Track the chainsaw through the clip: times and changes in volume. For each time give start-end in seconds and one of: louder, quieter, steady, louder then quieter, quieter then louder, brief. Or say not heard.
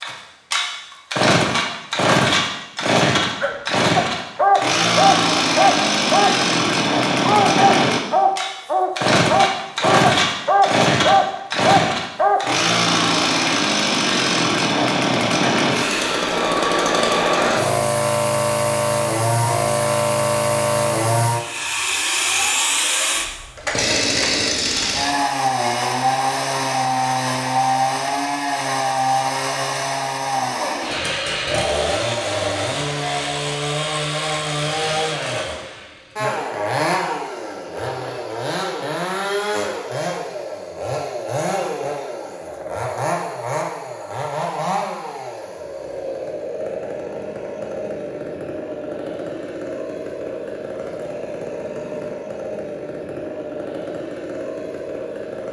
0.0-55.4 quieter.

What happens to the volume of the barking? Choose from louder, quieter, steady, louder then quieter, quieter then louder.
steady.